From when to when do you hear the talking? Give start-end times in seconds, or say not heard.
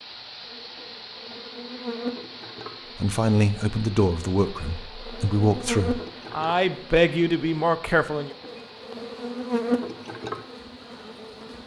3.0-8.3.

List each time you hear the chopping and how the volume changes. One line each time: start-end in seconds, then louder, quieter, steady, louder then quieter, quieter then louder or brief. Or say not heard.
not heard.